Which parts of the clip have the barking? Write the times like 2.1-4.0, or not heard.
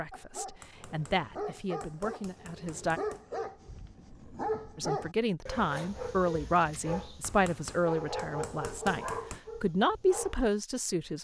0.1-10.3.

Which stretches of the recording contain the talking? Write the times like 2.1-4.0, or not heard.
0.0-3.0, 4.8-11.1.